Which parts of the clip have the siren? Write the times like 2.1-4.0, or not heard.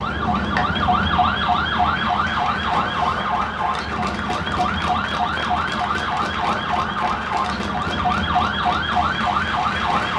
0.0-10.1.